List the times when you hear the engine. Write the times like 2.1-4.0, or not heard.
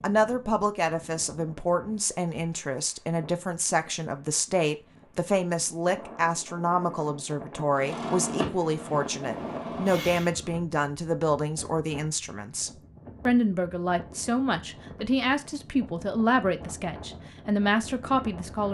7.8-10.3.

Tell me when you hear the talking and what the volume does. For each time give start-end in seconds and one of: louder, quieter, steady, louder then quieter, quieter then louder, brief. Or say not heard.
0.0-18.6 steady.